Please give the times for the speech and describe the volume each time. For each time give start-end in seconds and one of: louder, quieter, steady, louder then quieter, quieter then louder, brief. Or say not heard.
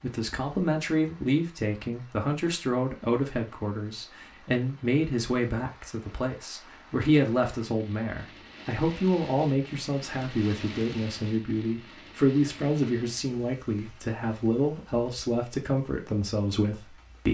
0.0-17.3 steady.